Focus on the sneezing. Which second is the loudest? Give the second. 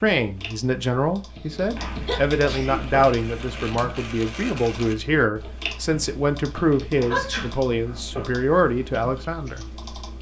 7 s.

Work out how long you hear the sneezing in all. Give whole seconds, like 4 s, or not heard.
3 s.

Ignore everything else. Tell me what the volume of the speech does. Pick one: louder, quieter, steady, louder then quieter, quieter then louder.
steady.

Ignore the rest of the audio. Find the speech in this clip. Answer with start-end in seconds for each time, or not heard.
0.0-9.7.